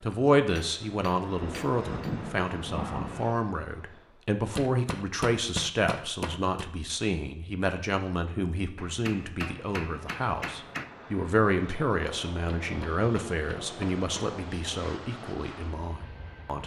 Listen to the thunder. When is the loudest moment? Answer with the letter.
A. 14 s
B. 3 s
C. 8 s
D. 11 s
B.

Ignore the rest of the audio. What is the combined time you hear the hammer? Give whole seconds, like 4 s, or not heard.
8 s.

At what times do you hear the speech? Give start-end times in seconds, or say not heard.
0.0-16.6.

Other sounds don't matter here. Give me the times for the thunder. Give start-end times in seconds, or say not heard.
1.4-3.4.